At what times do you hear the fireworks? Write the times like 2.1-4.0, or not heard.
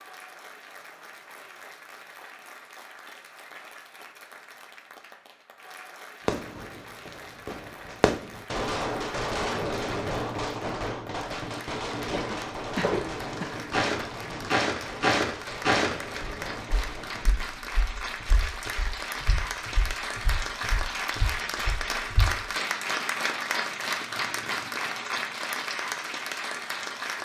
6.2-17.4.